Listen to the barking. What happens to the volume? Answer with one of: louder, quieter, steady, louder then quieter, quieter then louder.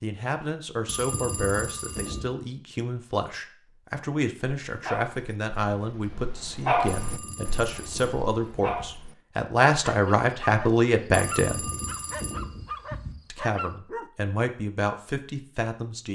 louder then quieter.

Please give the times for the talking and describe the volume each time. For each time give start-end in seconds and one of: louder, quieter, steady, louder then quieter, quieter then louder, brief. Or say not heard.
0.0-11.7 louder
13.3-16.1 brief.